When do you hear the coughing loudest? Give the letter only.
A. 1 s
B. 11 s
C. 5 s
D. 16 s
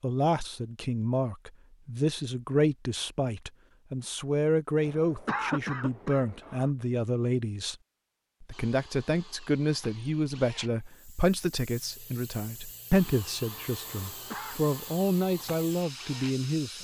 C.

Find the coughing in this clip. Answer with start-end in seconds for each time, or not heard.
4.8-6.7, 13.8-14.6.